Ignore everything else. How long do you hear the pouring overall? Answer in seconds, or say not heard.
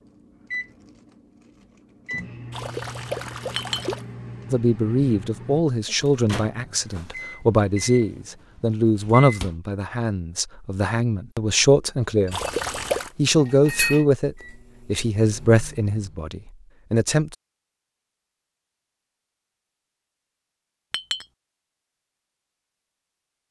2 s.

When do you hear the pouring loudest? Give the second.
13 s.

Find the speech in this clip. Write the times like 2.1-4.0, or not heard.
4.5-12.4, 13.2-17.4.